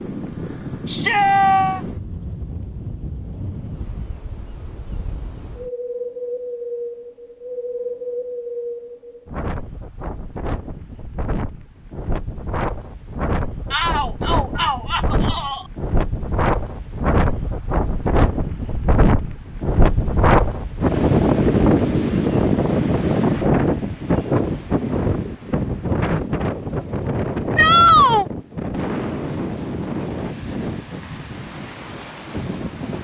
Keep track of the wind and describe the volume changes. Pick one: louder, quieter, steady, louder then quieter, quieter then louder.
louder then quieter.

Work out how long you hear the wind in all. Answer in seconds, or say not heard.
33 s.